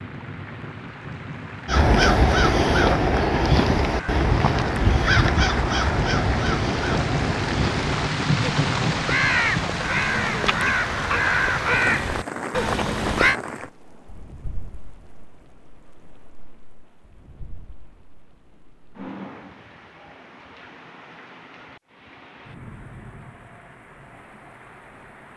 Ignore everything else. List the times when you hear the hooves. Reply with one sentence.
You can't hear the hooves here.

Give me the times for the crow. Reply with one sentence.
You can hear the crow from 1.6 to 13.3 s.